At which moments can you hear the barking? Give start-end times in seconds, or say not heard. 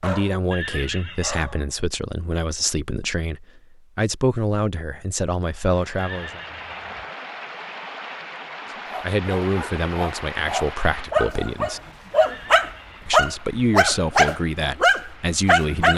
0.0-1.6, 8.8-15.9.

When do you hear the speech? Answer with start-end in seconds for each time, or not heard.
0.0-6.4, 9.0-11.8, 13.1-15.9.